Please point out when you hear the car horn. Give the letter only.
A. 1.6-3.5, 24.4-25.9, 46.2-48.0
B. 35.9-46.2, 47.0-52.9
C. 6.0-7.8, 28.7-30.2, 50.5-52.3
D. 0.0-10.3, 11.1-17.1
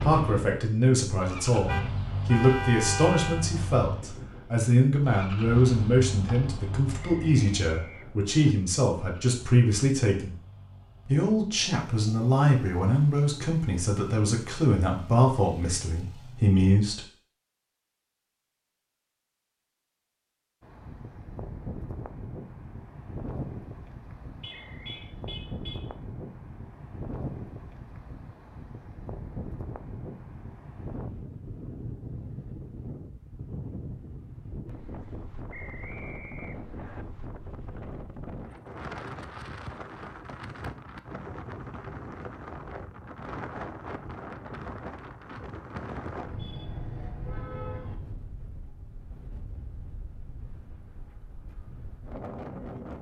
A.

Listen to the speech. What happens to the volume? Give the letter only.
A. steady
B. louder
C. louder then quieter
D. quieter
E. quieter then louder
A.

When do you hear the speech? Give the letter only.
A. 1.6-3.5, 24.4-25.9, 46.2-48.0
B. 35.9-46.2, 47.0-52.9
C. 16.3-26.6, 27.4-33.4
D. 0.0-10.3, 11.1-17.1
D.